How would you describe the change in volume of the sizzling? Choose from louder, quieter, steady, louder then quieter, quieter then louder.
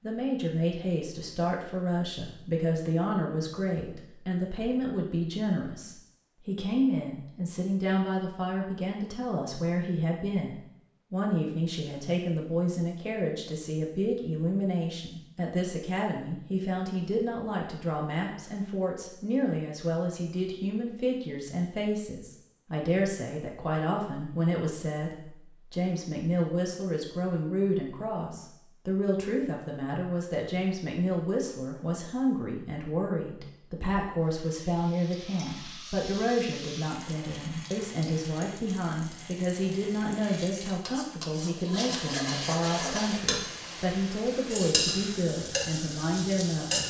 louder.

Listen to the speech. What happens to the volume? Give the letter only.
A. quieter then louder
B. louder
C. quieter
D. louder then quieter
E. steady
E.